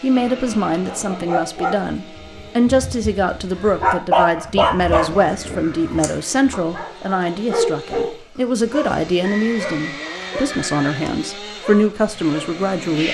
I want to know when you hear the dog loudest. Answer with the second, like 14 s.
4 s.